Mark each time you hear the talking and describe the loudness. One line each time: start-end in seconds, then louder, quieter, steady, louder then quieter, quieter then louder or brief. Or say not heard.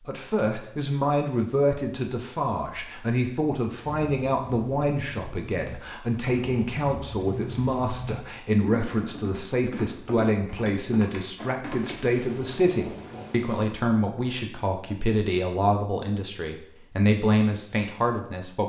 0.1-18.6 steady.